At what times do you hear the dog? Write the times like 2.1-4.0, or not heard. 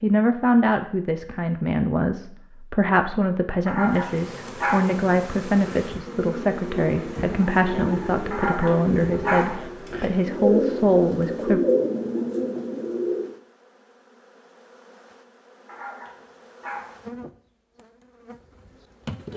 3.6-4.9, 8.3-9.6, 15.7-16.9.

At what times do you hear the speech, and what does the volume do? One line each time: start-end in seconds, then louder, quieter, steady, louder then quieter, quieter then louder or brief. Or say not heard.
0.0-11.6 steady.